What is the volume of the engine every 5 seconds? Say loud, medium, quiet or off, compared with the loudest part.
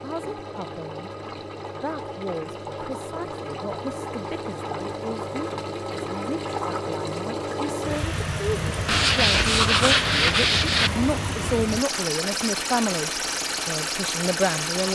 medium, loud, loud.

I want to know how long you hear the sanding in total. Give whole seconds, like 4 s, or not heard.
2 s.